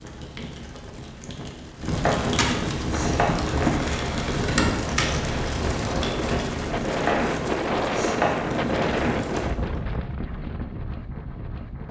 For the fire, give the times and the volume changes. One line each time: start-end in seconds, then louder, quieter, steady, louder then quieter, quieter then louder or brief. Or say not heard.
0.0-9.5 louder then quieter.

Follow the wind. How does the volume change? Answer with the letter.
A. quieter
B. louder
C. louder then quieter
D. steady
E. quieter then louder
C.